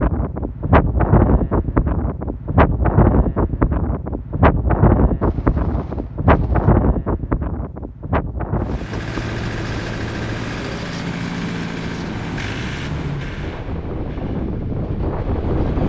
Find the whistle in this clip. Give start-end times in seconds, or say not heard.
not heard.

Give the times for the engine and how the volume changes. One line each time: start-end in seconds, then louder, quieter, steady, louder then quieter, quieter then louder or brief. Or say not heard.
8.6-15.8 quieter.